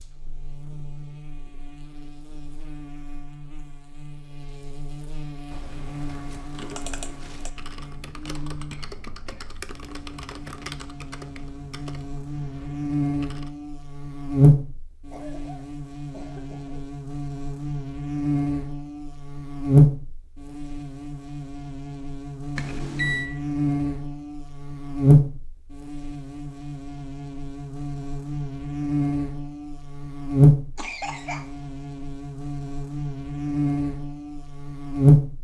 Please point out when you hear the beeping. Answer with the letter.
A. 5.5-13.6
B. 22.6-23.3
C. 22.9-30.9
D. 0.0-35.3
B.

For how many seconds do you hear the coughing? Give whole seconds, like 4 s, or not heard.
4 s.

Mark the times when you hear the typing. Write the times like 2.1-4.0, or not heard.
5.5-13.6.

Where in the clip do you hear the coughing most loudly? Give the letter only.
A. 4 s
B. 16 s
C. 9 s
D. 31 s
D.